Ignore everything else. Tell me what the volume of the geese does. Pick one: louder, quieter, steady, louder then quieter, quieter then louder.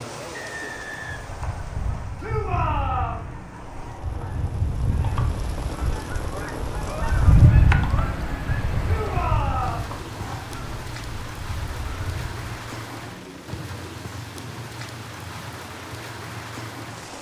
louder then quieter.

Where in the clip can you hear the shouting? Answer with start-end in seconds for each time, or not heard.
2.2-3.2, 8.8-9.9.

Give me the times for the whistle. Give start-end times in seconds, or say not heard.
0.3-1.9.